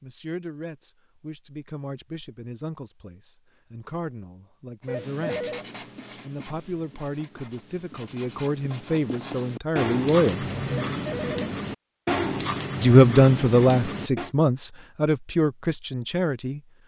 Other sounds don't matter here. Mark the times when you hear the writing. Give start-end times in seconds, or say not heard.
4.8-14.3.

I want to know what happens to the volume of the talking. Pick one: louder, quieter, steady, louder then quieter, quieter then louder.
louder then quieter.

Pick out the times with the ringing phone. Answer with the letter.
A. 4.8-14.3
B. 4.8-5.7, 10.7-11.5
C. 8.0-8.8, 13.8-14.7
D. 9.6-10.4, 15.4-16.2
B.